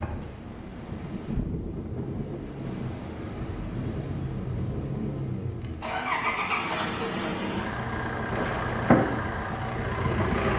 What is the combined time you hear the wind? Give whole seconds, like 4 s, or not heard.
9 s.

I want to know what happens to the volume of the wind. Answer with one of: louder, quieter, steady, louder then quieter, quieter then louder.
quieter then louder.